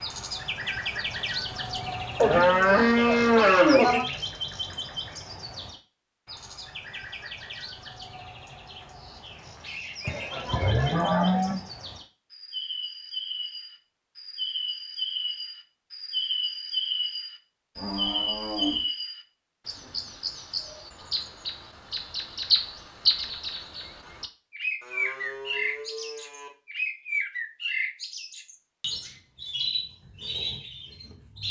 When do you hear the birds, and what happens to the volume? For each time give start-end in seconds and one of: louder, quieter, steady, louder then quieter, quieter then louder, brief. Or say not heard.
0.0-31.4 quieter then louder.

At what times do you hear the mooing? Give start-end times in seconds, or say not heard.
2.1-4.0, 10.1-11.6, 17.8-18.9, 24.8-26.5.